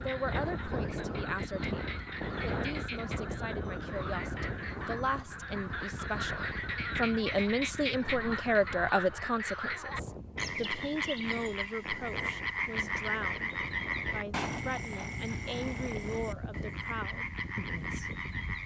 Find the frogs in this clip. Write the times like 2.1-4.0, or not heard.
0.0-18.6.